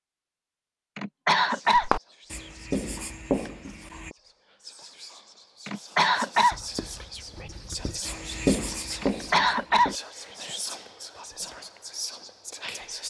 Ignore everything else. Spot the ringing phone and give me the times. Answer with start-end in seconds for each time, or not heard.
not heard.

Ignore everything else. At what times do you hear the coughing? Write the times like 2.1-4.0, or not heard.
0.9-1.9, 5.7-6.5, 9.0-9.9.